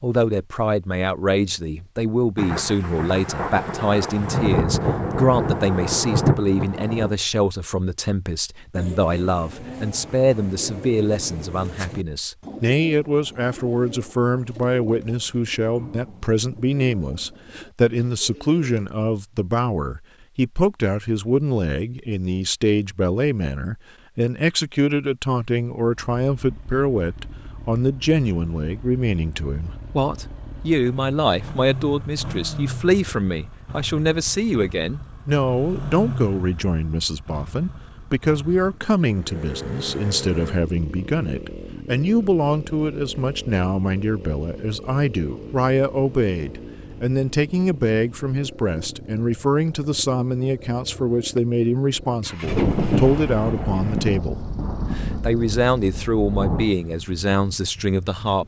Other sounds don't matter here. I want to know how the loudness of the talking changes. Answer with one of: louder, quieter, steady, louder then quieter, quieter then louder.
steady.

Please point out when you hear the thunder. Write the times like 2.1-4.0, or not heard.
2.4-7.2, 52.4-56.8.